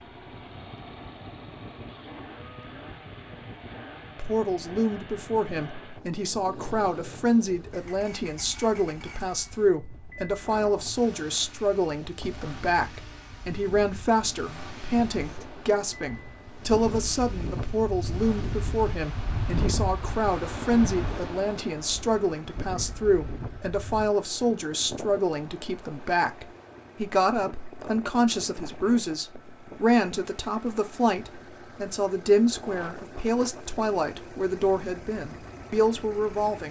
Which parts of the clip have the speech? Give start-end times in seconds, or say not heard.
4.2-36.6.